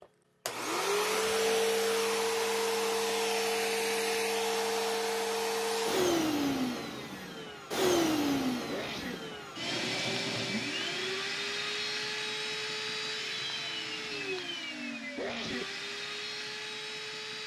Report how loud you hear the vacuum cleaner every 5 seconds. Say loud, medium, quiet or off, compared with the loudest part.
loud, loud, medium, medium.